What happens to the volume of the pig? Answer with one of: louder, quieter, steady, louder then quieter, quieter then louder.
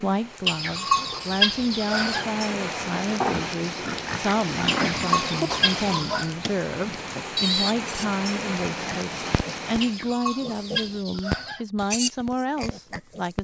quieter then louder.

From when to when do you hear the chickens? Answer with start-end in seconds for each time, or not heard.
0.5-2.2, 4.7-6.3, 9.8-11.7.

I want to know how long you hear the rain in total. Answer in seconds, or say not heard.
10 s.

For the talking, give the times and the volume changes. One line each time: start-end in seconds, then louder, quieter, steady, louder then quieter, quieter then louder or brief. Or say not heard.
0.0-13.3 steady.